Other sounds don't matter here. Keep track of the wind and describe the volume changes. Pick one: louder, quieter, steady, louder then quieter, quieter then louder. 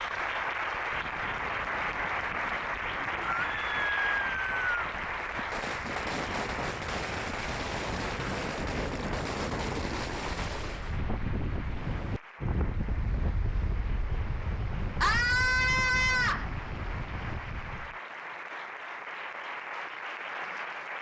louder.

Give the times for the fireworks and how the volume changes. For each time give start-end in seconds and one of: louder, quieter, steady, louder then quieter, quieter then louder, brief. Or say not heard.
5.3-11.0 steady.